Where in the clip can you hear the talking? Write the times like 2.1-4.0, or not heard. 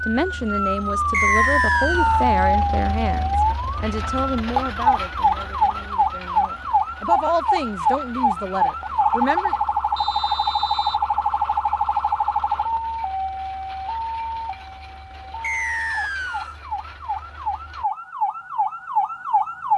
0.0-9.6.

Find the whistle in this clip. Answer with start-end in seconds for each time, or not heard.
1.1-2.2, 9.9-11.0, 15.4-16.6.